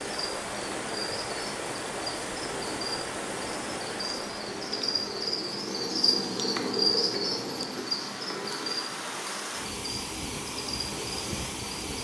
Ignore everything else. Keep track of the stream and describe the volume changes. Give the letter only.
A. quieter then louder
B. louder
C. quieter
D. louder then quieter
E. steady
A.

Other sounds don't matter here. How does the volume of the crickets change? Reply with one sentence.
The volume of the crickets goes up, then down.